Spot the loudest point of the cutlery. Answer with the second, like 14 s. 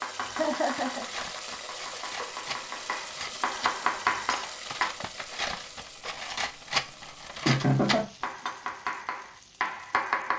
7 s.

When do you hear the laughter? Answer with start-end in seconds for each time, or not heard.
0.3-1.1, 7.5-8.1.